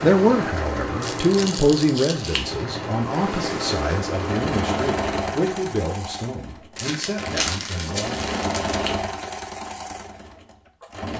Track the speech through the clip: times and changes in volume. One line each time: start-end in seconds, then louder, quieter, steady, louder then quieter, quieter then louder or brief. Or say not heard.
0.0-8.2 quieter.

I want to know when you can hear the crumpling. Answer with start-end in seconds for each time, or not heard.
1.0-2.4, 6.8-8.8.